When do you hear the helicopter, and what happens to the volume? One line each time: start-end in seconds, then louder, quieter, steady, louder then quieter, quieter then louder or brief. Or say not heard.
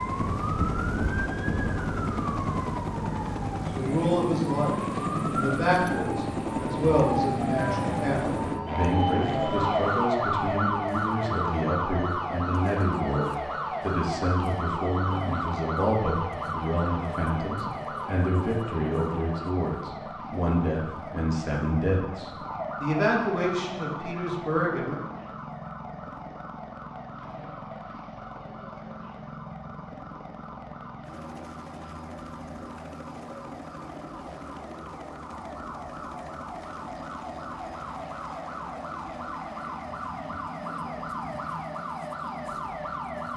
0.0-43.3 quieter.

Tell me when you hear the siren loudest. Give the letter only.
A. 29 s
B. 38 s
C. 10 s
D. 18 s
C.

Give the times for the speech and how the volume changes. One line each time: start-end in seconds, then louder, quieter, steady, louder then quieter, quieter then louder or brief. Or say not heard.
3.7-25.0 steady.